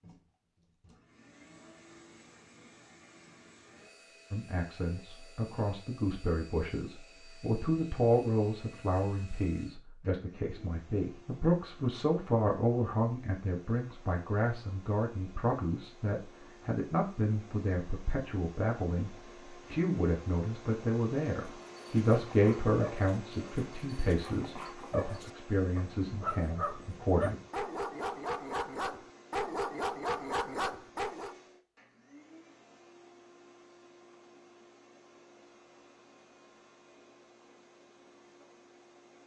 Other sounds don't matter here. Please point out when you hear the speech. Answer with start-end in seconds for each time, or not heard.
4.3-27.4.